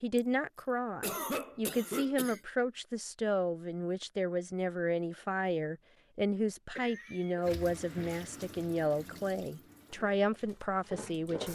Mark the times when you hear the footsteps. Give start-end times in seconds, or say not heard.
not heard.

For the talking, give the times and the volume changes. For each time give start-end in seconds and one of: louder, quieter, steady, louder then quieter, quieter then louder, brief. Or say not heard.
0.0-11.5 steady.